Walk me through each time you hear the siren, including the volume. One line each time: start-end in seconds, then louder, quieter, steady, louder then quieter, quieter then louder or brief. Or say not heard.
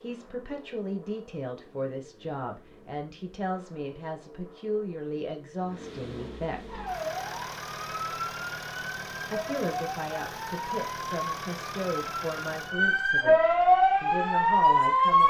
6.7-15.2 louder.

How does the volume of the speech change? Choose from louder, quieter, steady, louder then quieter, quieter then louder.
steady.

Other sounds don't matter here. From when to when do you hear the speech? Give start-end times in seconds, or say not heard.
0.0-6.8, 9.3-15.2.